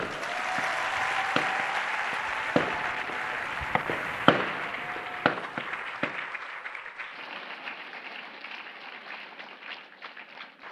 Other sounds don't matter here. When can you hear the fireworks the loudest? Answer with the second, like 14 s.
4 s.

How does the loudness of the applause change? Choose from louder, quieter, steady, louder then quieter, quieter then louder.
quieter.